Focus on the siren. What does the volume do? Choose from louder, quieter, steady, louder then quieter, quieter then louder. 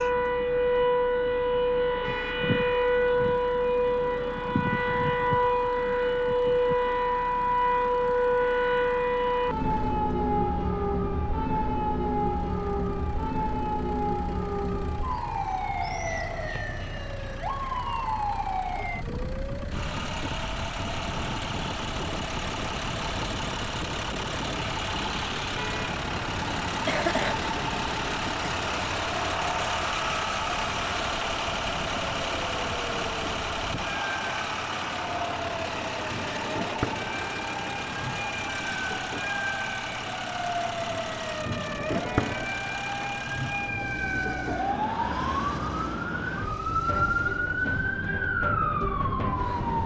quieter then louder.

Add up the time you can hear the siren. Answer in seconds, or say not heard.
50 s.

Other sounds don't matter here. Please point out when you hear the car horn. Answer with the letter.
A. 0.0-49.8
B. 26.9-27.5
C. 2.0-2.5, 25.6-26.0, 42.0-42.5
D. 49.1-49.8
C.